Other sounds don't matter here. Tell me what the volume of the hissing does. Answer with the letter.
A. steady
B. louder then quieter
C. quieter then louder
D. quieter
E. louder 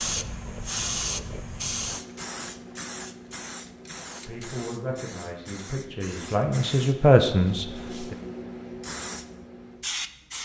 C.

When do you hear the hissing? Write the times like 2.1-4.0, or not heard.
0.0-10.4.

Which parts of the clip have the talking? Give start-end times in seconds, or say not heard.
4.2-8.2.